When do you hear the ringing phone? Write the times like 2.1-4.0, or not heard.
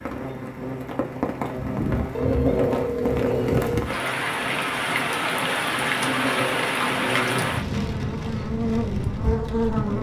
2.1-3.9.